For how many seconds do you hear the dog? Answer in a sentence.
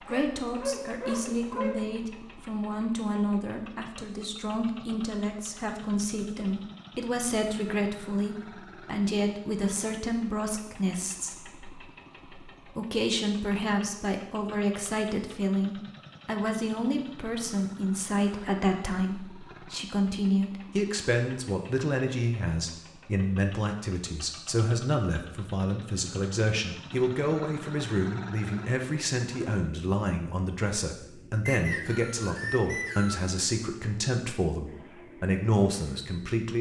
The dog can be heard for 2 seconds in total.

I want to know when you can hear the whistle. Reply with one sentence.
The whistle can be heard from 31.4 to 33.2 s.